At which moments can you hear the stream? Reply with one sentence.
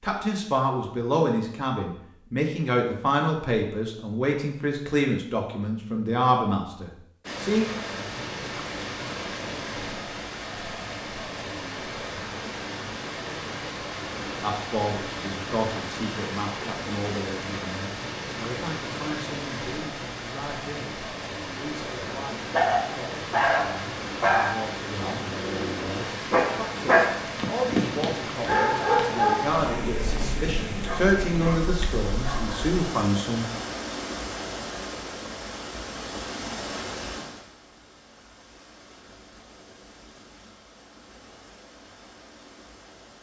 You can hear the stream from 7.2 to 43.1 s.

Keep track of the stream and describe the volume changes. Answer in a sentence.
The loudness of the stream goes down.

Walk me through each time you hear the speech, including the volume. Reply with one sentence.
The speech can be heard from 0.0 to 7.7 s, at a steady volume; and from 14.4 to 33.5 s, getting quieter then louder.